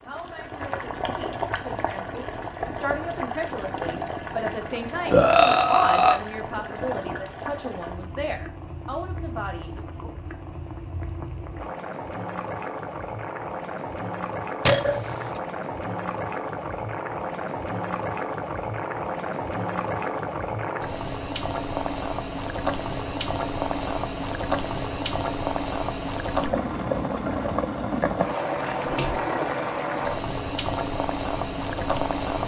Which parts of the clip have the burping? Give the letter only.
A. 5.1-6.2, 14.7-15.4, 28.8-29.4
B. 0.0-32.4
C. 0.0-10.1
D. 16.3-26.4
A.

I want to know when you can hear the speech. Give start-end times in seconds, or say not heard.
0.0-10.1.